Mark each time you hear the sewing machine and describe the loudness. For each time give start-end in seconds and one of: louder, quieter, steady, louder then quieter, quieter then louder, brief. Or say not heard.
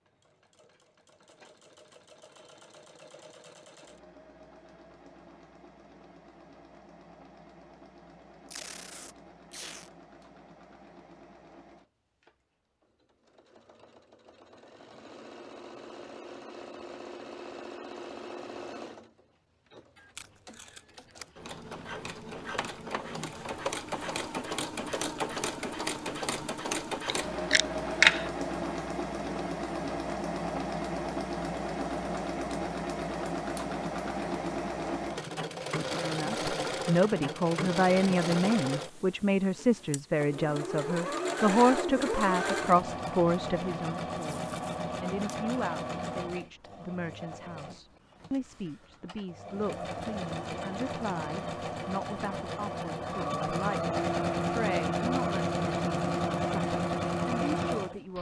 0.0-58.1 louder.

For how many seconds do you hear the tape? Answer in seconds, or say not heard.
4 s.